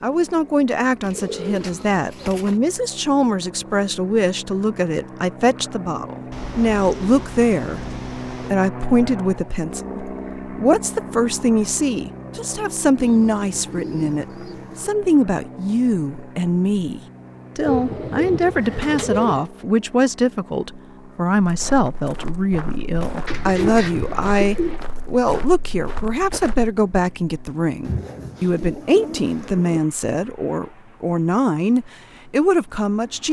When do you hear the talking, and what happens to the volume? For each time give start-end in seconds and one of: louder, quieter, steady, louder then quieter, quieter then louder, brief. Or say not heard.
0.0-33.2 steady.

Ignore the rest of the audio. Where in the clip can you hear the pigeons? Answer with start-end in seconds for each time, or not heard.
1.0-2.6, 6.3-8.6, 12.9-14.9, 17.6-19.4, 23.2-24.8, 27.9-29.8.